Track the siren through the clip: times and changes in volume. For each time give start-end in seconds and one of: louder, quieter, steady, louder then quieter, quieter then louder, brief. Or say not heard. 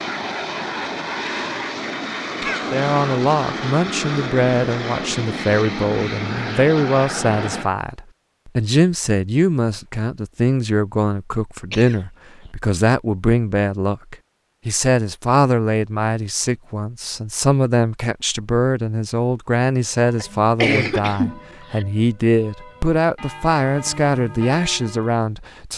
not heard.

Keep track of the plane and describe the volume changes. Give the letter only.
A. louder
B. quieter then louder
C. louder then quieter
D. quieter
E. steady
E.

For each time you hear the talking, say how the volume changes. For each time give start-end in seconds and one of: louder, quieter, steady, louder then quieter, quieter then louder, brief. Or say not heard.
2.7-25.7 steady.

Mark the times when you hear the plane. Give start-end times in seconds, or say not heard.
0.0-7.7.